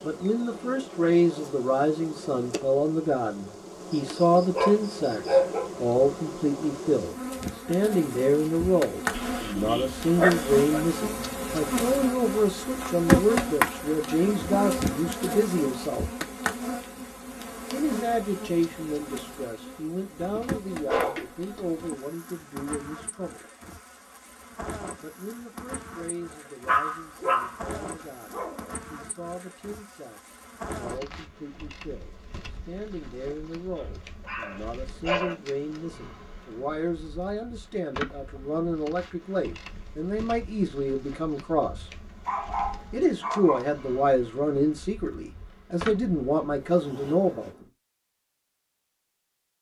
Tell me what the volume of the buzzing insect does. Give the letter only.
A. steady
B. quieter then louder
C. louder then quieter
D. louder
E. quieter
C.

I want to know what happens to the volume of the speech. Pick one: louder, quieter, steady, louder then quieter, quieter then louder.
quieter then louder.